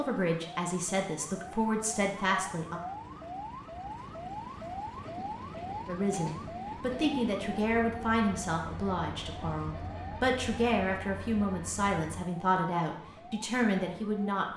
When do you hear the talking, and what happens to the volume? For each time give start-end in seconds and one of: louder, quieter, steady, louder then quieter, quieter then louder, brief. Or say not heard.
0.0-2.8 brief
5.8-14.4 steady.